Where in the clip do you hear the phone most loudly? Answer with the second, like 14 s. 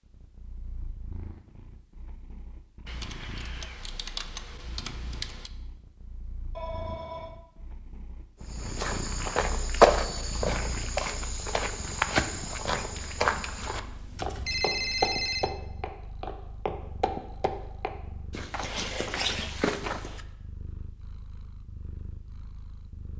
15 s.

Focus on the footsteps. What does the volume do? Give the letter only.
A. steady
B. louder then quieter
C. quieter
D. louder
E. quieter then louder
C.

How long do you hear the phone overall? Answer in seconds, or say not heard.
2 s.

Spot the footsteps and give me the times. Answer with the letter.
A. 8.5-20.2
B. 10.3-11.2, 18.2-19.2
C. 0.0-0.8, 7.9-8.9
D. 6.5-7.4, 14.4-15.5
A.